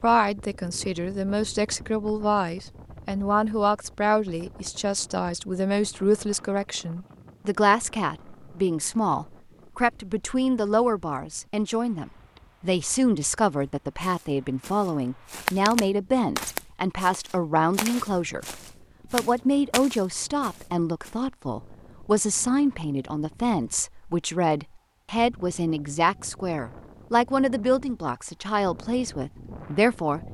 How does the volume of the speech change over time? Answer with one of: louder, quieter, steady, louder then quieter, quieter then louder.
steady.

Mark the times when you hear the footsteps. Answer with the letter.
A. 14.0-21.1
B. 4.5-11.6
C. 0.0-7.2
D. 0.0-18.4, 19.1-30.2
A.